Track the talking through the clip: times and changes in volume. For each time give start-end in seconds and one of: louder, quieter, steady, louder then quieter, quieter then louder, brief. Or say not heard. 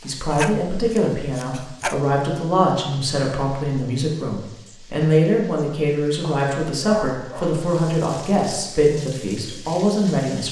0.0-10.4 steady.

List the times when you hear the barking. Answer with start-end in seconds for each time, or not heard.
0.0-2.0, 6.2-7.6.